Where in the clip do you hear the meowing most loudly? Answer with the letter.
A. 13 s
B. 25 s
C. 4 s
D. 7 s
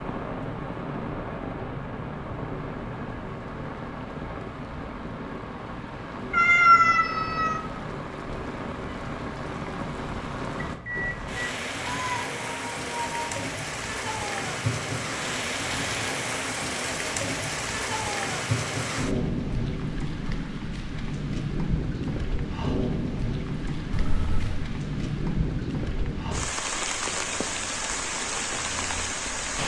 D.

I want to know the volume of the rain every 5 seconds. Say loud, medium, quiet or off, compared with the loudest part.
medium, medium, loud, loud, loud, loud.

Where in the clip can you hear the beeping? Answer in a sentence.
You can hear the beeping from 10.6 to 11.4 s.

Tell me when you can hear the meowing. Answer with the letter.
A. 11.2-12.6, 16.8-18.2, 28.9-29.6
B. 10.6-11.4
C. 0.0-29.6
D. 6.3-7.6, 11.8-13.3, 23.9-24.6
D.